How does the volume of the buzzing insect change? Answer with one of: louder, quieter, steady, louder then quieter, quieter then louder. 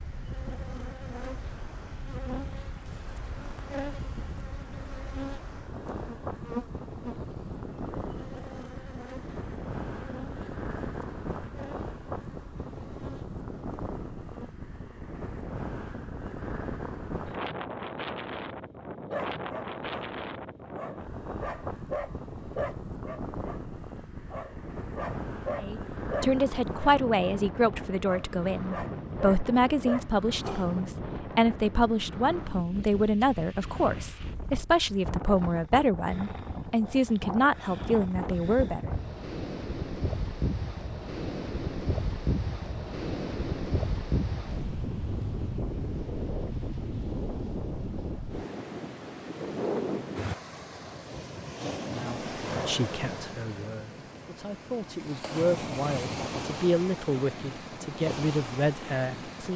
quieter.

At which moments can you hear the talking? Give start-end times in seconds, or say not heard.
25.6-38.9, 51.8-59.5.